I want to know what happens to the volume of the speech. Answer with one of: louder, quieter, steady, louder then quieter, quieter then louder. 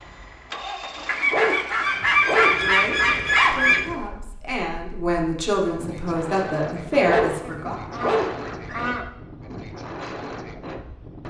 louder.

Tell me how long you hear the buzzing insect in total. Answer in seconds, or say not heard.
not heard.